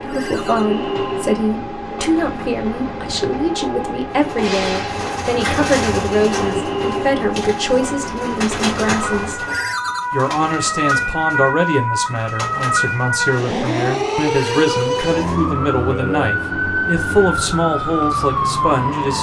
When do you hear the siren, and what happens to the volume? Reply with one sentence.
The siren can be heard from 0.0 to 19.1 s, getting louder.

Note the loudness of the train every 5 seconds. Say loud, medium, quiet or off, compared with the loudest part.
loud, loud, off, off.